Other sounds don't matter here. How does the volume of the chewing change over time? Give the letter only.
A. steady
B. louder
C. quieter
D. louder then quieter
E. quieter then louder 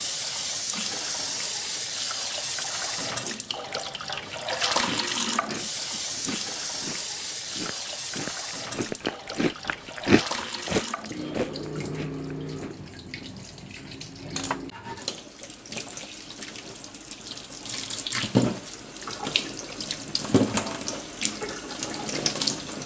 D.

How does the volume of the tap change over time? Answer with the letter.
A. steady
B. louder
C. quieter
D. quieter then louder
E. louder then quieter
D.